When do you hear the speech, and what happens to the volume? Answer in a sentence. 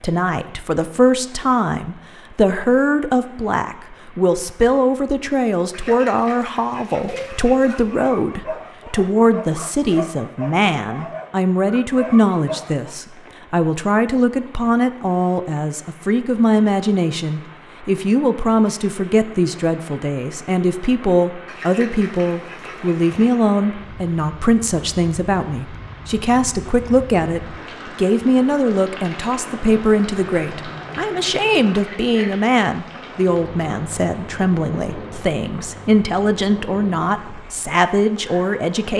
You can hear the speech from 0.0 to 38.9 s, at a steady volume.